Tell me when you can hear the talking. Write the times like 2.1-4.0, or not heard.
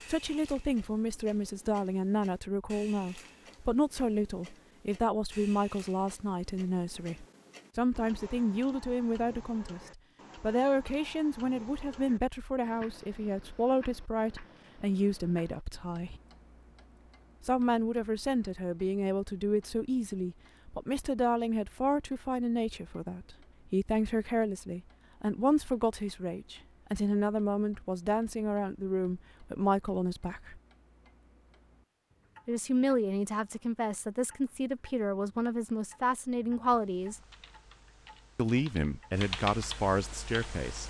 0.1-16.2, 17.4-30.6, 32.5-37.2, 38.4-40.8.